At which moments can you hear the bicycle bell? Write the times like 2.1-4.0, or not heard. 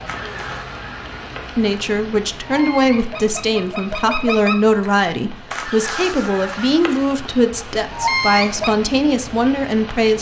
not heard.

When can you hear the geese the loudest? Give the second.
8 s.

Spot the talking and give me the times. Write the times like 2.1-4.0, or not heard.
1.6-10.1.